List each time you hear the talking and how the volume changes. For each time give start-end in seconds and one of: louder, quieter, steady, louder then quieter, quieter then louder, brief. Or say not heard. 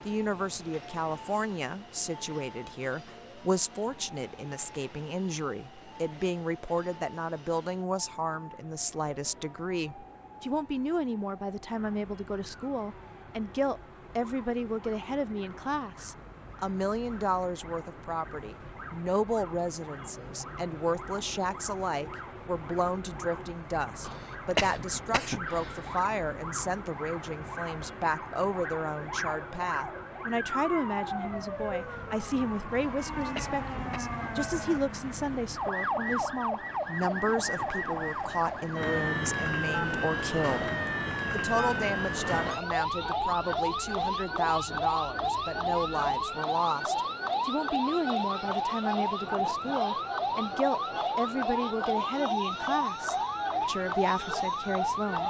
0.1-55.2 steady.